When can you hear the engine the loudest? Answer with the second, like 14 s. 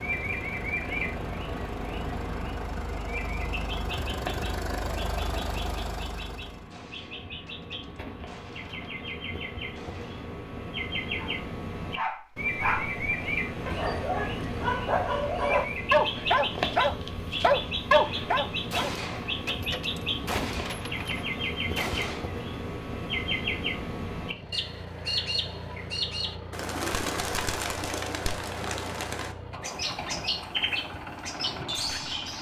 5 s.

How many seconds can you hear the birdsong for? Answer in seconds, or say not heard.
32 s.